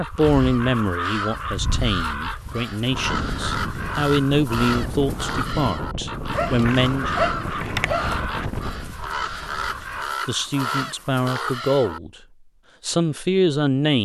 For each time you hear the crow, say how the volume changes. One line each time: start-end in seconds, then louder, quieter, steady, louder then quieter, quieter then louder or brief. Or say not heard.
0.0-12.0 steady.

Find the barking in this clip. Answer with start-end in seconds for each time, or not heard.
6.3-8.2.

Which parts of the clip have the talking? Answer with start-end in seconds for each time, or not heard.
0.0-7.1, 10.2-12.1, 12.8-14.0.